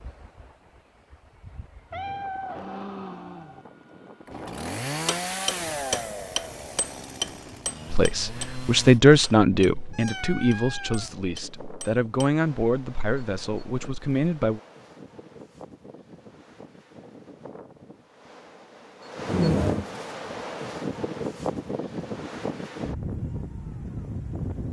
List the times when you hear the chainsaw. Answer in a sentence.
You can hear the chainsaw from 4.2 to 9.0 s.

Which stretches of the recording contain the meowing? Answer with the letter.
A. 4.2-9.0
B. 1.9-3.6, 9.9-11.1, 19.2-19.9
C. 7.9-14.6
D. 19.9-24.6
B.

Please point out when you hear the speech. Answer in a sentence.
The speech can be heard from 7.9 to 14.6 s.